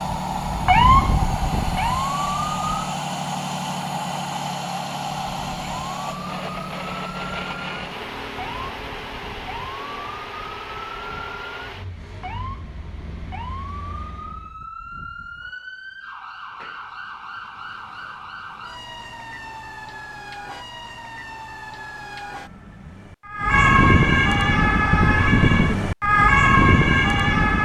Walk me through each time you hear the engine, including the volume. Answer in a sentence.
The engine can be heard from 0.0 to 14.6 s, getting quieter.